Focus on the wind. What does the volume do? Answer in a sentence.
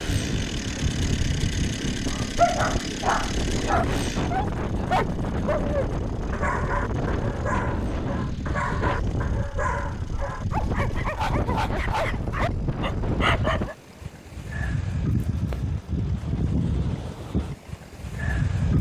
The volume of the wind stays about the same.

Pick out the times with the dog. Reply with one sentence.
The dog can be heard from 2.1 to 13.8 s.